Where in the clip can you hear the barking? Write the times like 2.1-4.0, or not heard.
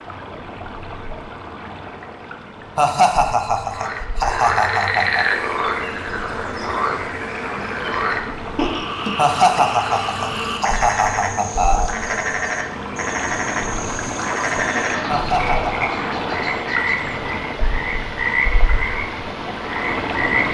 not heard.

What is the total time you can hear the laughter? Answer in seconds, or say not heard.
6 s.